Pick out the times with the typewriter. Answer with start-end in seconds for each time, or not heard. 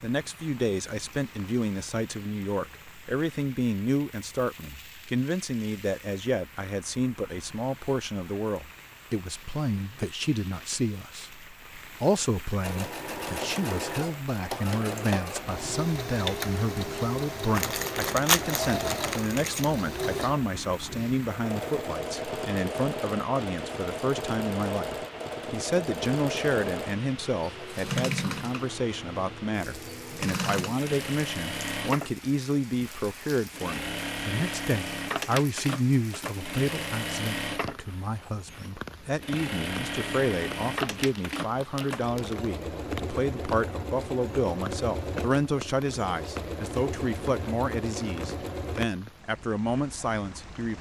not heard.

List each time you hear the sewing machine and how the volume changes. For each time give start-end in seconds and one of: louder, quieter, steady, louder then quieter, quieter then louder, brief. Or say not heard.
12.6-48.9 steady.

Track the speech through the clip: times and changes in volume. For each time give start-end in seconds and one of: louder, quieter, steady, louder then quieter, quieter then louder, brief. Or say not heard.
0.0-50.7 steady.